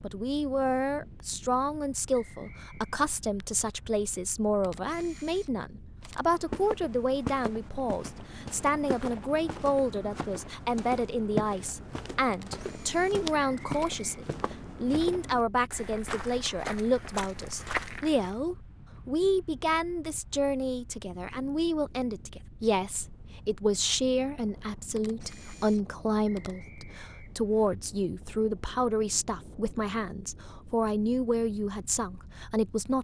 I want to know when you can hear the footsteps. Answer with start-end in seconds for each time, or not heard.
6.0-18.4.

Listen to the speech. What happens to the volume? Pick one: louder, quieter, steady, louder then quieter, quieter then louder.
steady.